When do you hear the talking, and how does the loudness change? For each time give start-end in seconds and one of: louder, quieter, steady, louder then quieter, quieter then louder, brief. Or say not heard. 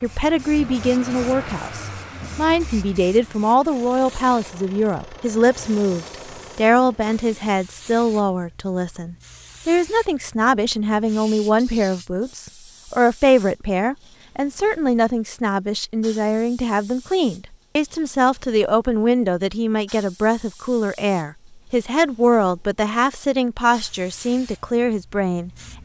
0.0-25.5 steady.